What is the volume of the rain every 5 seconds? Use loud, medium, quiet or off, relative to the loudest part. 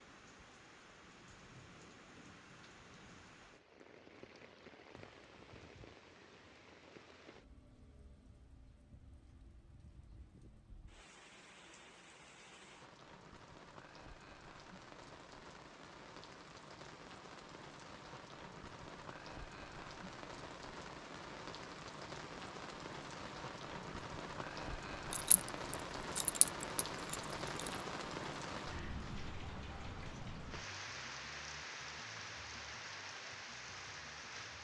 quiet, quiet, quiet, medium, loud, loud, loud.